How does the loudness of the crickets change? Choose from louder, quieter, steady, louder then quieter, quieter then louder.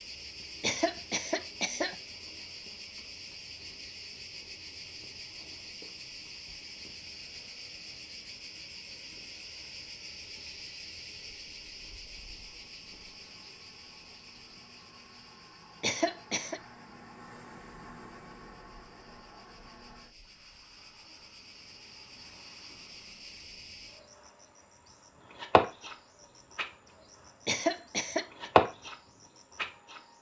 quieter then louder.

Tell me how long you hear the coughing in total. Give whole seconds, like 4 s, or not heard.
3 s.